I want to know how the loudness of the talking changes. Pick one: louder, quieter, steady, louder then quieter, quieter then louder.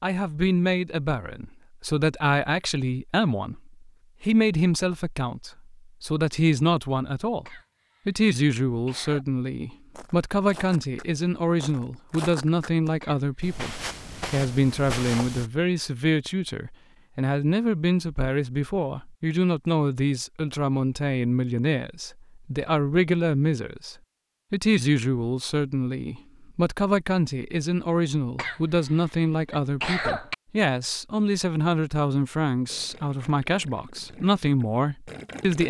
steady.